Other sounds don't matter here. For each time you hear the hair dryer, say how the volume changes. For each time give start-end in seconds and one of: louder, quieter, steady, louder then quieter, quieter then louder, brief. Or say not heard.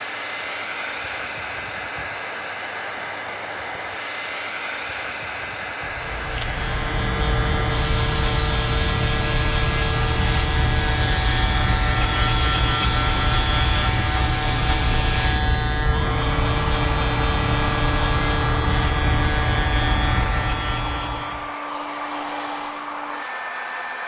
0.0-24.0 steady.